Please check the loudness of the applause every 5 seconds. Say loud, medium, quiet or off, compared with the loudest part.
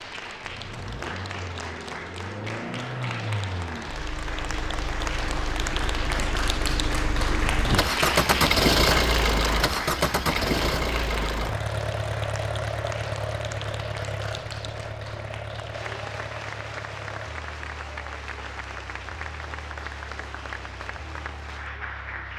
medium, loud, medium, medium, medium.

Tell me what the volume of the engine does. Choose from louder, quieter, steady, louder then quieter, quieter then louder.
louder then quieter.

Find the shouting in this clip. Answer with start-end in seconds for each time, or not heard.
not heard.